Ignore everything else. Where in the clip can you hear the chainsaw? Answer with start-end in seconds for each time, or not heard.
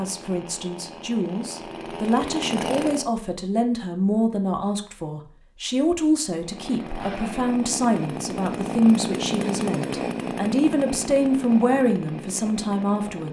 0.0-3.1, 6.3-13.2.